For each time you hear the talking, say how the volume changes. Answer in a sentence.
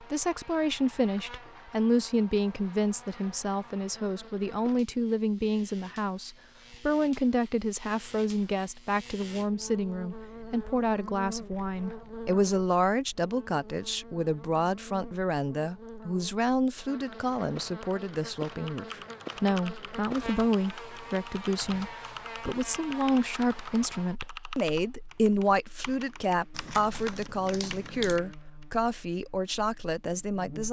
You can hear the talking from 0.0 to 30.6 s, at a steady volume.